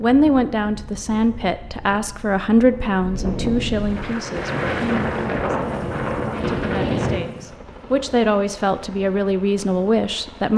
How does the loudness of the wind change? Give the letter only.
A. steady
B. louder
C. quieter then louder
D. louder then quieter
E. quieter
B.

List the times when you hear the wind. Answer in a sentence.
The wind can be heard from 0.0 to 7.2 s.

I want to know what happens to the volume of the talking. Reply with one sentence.
The loudness of the talking goes down, then up.